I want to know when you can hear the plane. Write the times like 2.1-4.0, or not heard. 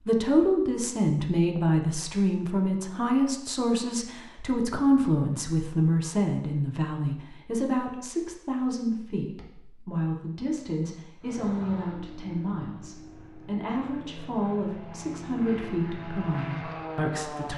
11.2-17.5.